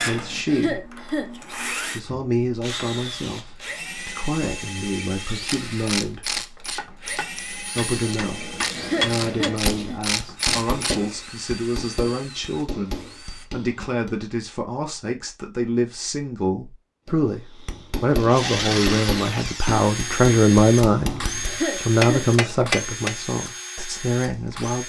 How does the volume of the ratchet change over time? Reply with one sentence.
The loudness of the ratchet goes down, then up.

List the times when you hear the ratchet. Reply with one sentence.
You can hear the ratchet from 5.5 to 11.0 s.